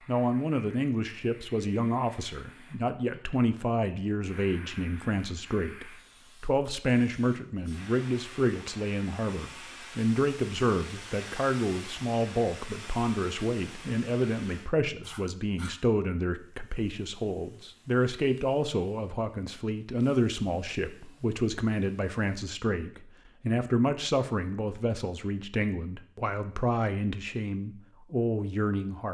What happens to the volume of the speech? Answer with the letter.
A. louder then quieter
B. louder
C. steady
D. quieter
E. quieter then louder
C.